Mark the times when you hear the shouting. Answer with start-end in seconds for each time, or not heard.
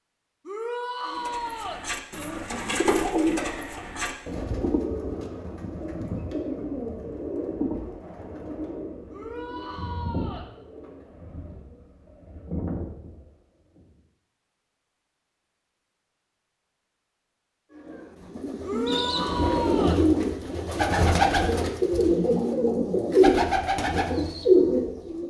0.5-1.9, 9.1-10.5, 18.6-20.0.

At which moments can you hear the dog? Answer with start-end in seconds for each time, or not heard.
not heard.